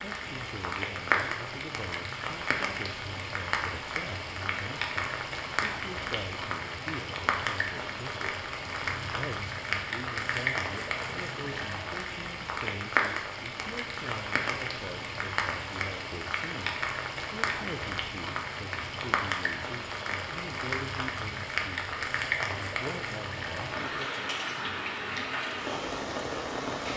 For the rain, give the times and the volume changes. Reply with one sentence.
You can hear the rain from 0.0 to 26.9 s, at a steady volume.